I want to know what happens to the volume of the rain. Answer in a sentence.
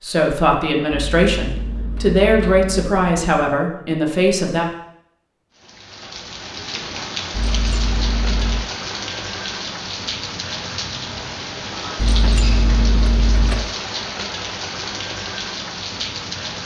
The volume of the rain stays about the same.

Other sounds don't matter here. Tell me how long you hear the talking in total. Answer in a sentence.
The talking can be heard for 5 seconds in total.